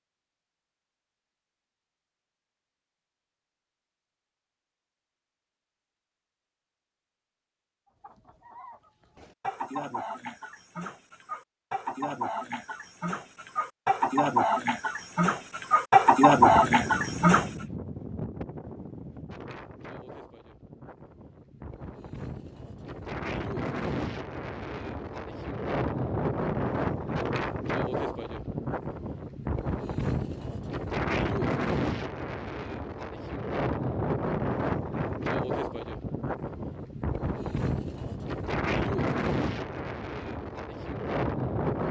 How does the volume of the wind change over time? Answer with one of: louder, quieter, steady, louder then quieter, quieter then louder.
louder.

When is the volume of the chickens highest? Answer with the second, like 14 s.
16 s.